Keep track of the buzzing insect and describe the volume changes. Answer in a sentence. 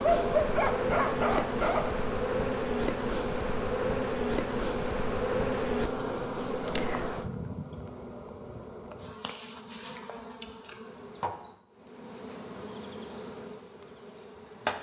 The volume of the buzzing insect goes down.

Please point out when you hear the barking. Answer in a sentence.
The barking can be heard from 0.0 to 2.0 s.